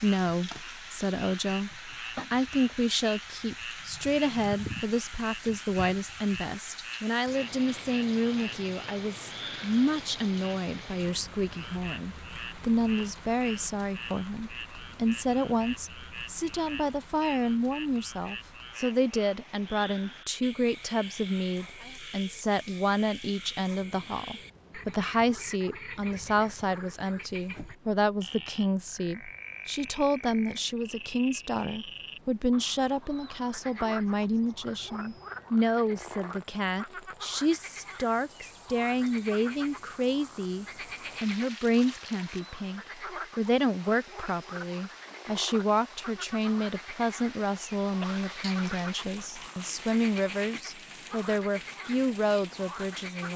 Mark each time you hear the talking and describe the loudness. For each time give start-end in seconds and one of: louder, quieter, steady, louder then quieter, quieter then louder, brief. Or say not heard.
0.0-53.3 steady.